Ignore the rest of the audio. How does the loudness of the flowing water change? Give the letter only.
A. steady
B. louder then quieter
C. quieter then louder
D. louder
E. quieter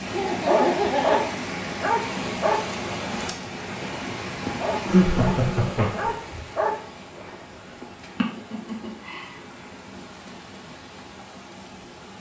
E.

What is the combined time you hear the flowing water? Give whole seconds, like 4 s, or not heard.
12 s.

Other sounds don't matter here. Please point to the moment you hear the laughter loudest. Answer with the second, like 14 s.
5 s.